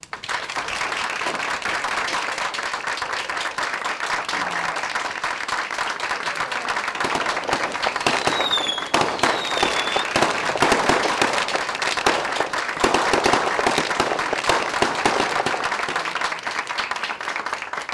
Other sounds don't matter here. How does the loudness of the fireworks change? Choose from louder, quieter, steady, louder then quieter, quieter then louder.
steady.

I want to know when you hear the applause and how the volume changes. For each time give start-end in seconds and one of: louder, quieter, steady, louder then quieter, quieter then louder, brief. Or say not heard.
0.0-17.9 steady.